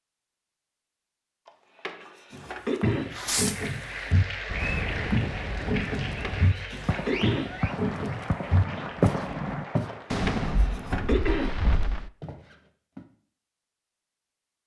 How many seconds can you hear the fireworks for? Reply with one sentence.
You can hear the fireworks for 8 seconds altogether.